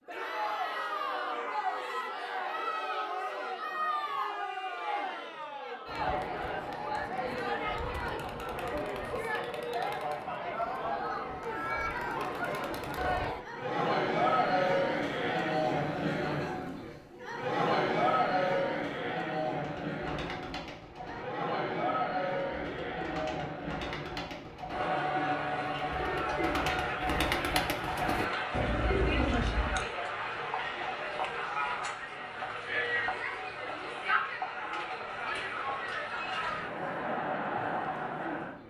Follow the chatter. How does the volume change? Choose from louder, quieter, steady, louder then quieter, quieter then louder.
steady.